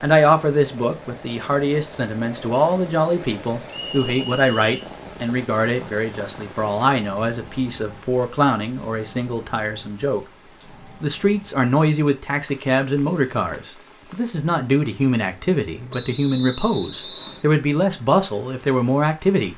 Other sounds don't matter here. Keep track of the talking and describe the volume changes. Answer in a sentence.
The volume of the talking stays about the same.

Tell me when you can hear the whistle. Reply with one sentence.
The whistle can be heard from 3.7 to 4.9 s and from 15.9 to 17.4 s.